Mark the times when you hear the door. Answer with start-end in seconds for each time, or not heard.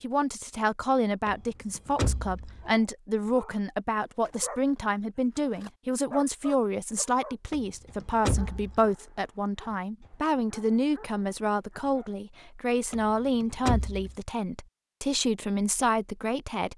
1.2-2.7, 7.5-8.8, 12.9-14.2.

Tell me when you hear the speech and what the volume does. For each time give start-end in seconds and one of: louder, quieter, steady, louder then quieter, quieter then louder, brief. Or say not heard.
0.0-16.7 steady.